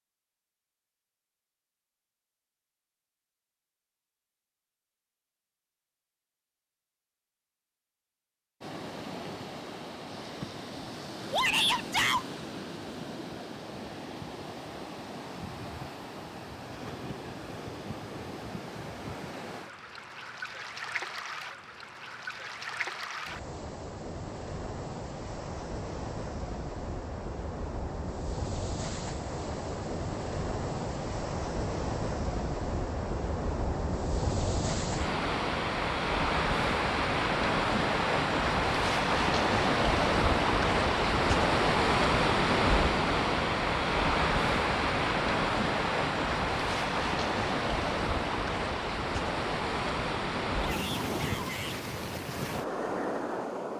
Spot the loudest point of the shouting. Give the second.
12 s.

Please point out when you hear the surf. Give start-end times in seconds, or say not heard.
8.6-53.7.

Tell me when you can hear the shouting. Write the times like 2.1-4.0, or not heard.
11.3-12.2, 50.6-51.8.